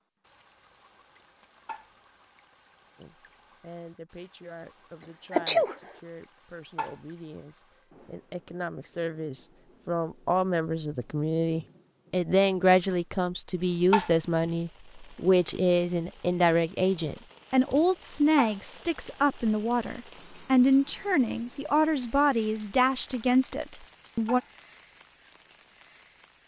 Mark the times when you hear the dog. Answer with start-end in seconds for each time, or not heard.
not heard.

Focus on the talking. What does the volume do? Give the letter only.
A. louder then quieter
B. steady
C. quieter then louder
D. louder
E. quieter
D.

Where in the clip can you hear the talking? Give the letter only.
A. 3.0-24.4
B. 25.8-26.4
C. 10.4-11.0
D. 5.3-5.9
A.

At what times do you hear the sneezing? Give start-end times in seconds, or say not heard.
5.3-5.9.